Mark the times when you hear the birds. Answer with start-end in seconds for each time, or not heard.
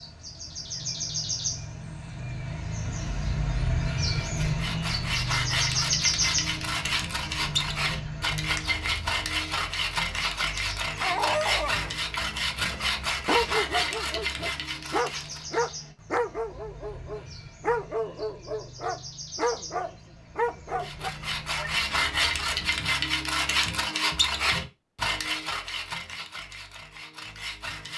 0.0-22.8.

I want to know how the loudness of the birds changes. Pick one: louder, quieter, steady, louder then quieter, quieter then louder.
quieter.